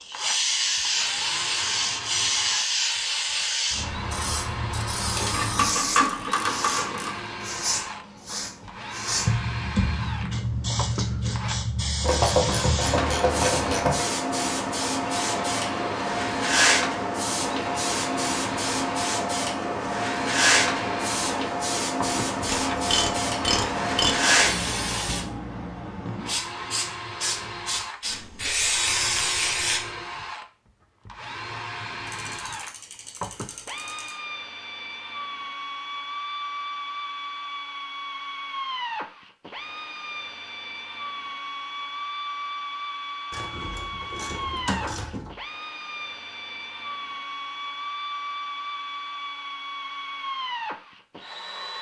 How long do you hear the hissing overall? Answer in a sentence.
You can hear the hissing for 30 seconds altogether.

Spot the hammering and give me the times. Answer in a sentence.
You can't hear the hammering here.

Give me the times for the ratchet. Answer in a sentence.
You can hear the ratchet from 5.2 to 7.2 s, from 12.0 to 14.1 s, from 22.4 to 24.1 s, from 32.0 to 34.1 s and from 43.3 to 45.4 s.